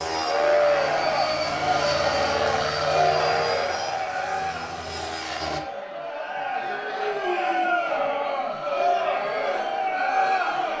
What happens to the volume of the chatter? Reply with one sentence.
The volume of the chatter goes down, then up.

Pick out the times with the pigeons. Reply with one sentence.
The pigeons can't be heard in this clip.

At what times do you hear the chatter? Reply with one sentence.
You can hear the chatter from 0.1 to 10.7 s.